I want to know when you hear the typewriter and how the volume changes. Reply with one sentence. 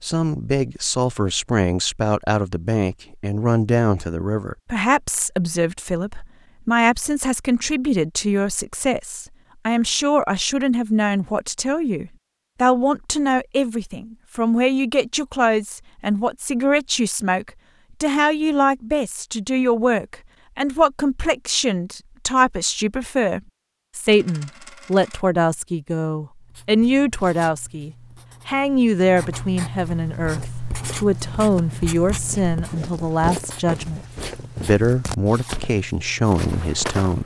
The typewriter can't be heard in this clip.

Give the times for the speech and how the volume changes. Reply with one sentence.
You can hear the speech from 0.0 to 37.2 s, at a steady volume.